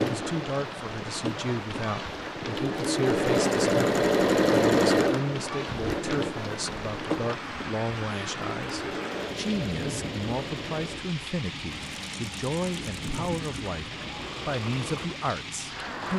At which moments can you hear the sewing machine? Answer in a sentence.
You can hear the sewing machine from 0.0 to 16.1 s.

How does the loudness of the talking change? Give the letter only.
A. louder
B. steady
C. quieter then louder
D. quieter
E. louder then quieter
B.